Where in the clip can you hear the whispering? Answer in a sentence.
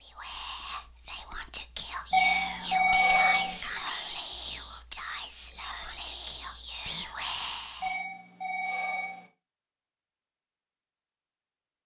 The whispering can be heard from 0.0 to 8.0 s.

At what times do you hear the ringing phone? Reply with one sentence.
You can hear the ringing phone from 2.1 to 3.6 s and from 7.8 to 9.3 s.